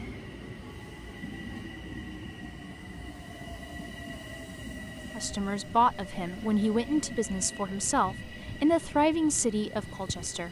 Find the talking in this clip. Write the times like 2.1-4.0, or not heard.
5.2-10.4.